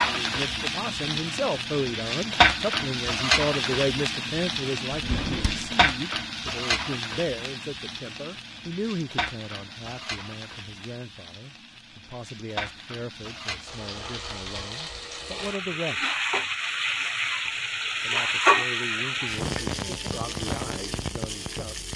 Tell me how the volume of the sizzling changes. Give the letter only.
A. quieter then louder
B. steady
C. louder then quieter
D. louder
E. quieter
A.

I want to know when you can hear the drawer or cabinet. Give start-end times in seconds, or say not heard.
4.9-5.8.